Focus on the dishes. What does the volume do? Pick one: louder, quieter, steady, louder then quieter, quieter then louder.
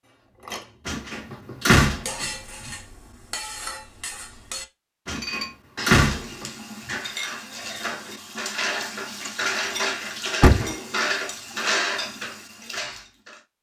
louder.